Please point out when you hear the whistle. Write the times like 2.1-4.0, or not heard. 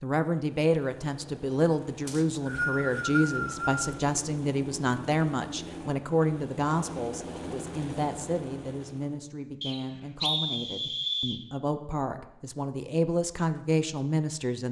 2.0-4.0, 9.6-11.4.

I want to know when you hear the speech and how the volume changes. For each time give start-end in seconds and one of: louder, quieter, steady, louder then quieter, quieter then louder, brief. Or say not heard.
0.0-14.6 quieter then louder.